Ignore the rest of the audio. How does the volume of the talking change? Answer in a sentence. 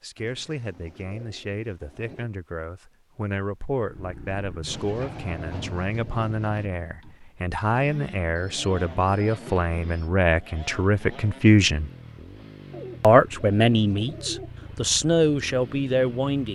The loudness of the talking goes up.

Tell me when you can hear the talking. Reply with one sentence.
You can hear the talking from 0.0 to 11.9 s and from 13.0 to 16.4 s.